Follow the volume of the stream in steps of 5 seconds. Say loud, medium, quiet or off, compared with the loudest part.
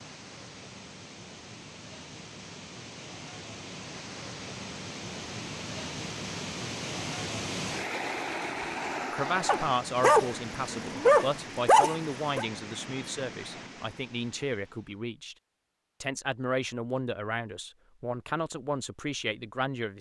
medium, loud, medium, off.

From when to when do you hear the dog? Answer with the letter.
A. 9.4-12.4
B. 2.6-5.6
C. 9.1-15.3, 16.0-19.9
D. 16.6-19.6
A.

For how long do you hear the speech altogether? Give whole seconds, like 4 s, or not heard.
10 s.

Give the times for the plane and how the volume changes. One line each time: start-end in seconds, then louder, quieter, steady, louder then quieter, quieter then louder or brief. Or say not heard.
not heard.